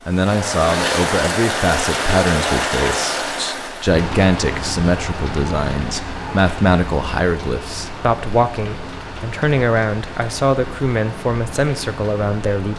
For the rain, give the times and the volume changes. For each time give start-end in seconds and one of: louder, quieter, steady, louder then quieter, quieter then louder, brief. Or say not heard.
0.0-12.7 quieter.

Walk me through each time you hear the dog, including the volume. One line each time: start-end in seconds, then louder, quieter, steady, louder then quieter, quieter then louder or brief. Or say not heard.
not heard.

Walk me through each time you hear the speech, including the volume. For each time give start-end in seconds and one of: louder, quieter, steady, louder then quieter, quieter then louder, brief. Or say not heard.
0.1-12.7 steady.